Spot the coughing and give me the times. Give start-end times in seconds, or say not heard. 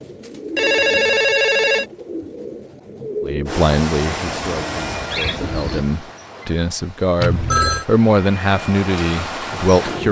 not heard.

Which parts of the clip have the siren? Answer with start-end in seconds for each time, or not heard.
not heard.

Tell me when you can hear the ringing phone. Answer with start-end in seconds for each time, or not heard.
0.6-1.9, 7.2-7.8.